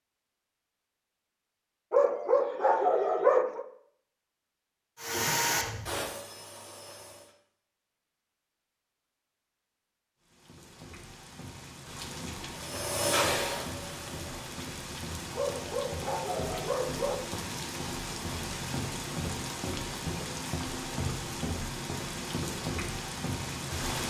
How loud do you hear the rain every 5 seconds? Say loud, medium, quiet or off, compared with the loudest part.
off, off, medium, loud, loud.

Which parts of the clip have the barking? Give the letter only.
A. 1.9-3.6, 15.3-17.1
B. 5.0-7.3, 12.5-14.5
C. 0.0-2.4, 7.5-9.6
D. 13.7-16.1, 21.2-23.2
A.